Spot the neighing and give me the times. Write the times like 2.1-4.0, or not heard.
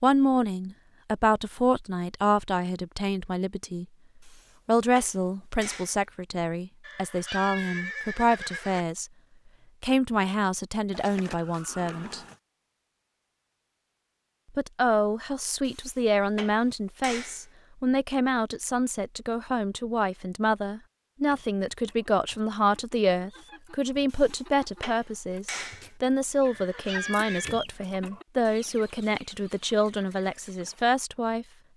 6.8-8.8, 10.9-12.3, 26.4-27.6.